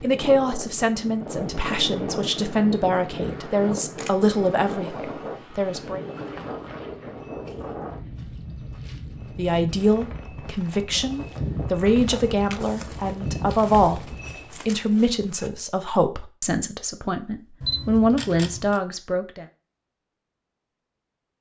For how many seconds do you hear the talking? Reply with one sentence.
The talking can be heard for 16 seconds in total.